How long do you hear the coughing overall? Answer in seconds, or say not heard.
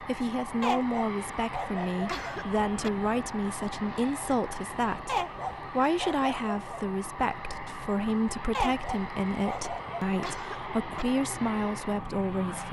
2 s.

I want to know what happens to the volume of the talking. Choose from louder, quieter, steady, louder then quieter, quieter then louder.
steady.